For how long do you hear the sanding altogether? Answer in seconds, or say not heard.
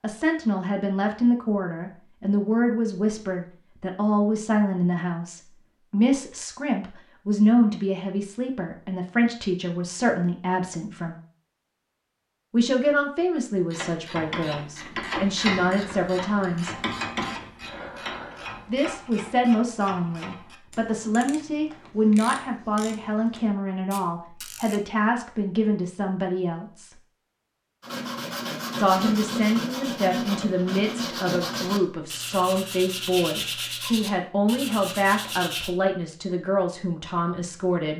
8 s.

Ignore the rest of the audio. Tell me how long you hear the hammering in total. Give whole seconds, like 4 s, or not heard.
not heard.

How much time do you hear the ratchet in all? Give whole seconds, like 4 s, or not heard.
11 s.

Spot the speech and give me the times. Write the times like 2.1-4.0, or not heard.
0.0-11.2, 12.5-16.8, 18.6-26.9, 28.8-37.9.